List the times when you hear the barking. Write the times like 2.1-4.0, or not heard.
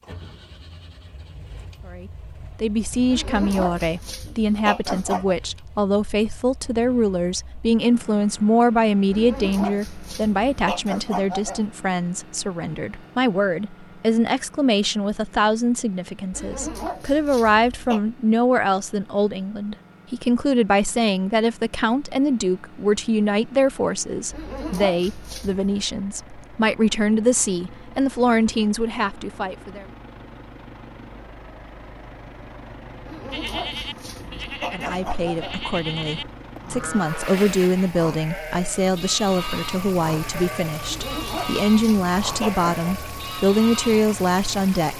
3.0-5.3, 9.1-11.7, 16.3-18.0, 24.3-25.8, 33.0-35.6, 40.8-42.7.